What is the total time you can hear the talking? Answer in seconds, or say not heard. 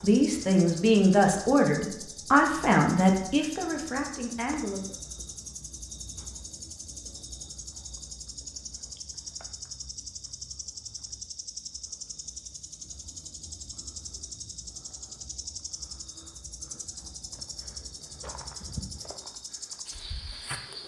5 s.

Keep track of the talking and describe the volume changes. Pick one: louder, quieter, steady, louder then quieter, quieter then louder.
quieter.